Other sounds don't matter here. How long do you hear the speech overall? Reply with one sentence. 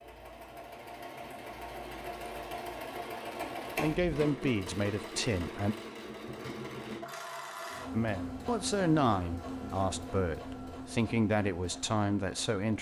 The speech can be heard for 7 seconds in total.